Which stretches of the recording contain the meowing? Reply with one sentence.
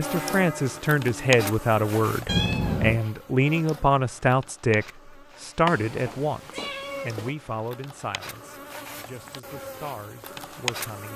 You can hear the meowing from 2.2 to 3.0 s and from 5.7 to 7.3 s.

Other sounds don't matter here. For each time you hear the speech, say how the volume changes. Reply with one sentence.
The speech can be heard from 0.0 to 11.1 s, getting quieter.